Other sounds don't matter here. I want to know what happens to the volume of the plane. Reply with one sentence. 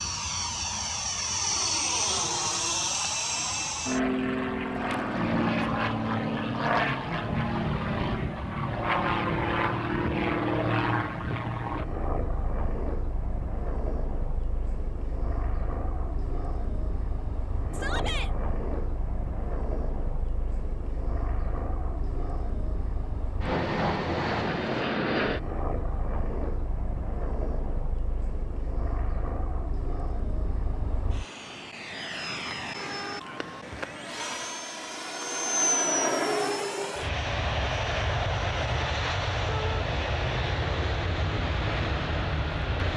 The volume of the plane goes down, then up.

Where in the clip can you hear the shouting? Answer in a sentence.
The shouting can be heard from 17.7 to 18.3 s and from 39.5 to 39.9 s.